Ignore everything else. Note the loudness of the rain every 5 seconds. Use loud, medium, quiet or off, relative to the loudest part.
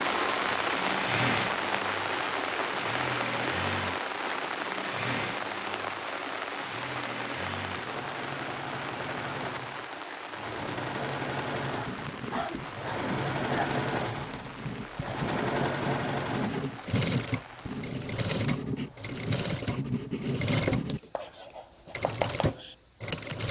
loud, medium, medium, quiet, off.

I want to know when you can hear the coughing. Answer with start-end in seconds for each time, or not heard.
11.7-13.7.